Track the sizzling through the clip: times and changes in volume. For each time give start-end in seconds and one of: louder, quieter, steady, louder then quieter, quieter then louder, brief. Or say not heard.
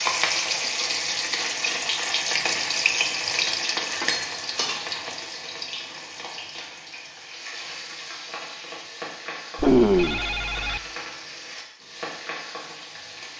0.0-13.3 quieter.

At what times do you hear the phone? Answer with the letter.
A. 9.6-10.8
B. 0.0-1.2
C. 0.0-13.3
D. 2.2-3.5
A.